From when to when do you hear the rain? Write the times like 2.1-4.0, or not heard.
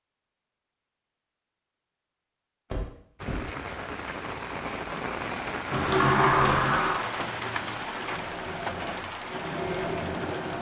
3.1-10.5.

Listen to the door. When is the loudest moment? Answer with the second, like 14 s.
6 s.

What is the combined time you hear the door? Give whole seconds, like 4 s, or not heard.
2 s.